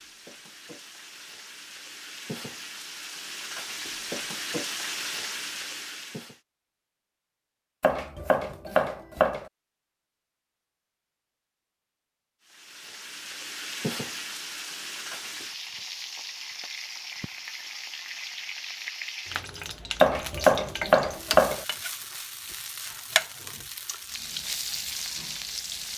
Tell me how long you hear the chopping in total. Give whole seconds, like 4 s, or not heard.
3 s.